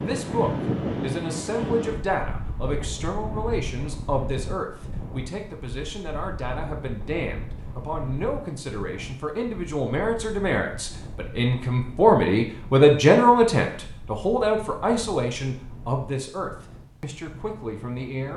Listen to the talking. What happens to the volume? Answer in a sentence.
The volume of the talking goes up, then down.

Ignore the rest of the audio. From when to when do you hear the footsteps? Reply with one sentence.
You can't hear the footsteps here.